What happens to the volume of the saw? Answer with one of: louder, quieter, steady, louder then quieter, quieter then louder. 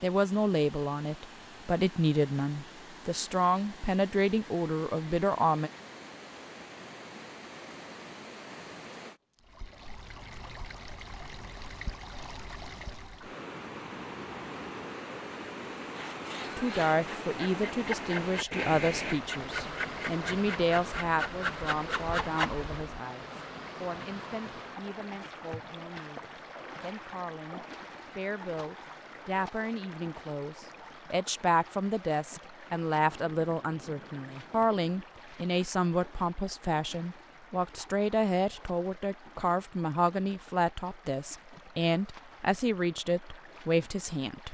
louder.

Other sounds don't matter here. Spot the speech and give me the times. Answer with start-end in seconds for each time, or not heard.
0.0-5.7, 16.6-44.4.